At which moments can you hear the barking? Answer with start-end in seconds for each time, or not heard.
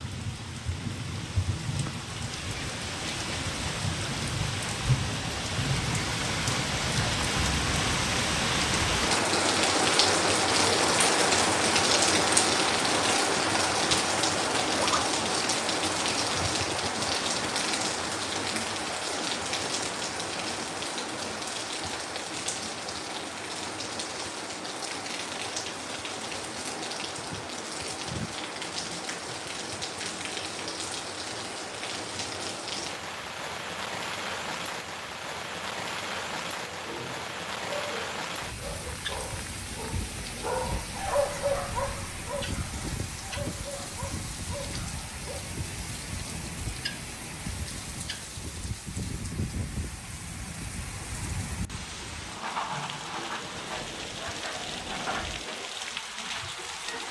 36.6-45.4.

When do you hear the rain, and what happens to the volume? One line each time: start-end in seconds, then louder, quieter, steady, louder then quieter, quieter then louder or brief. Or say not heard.
0.0-57.0 quieter.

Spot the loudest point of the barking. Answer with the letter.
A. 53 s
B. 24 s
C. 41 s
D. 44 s
C.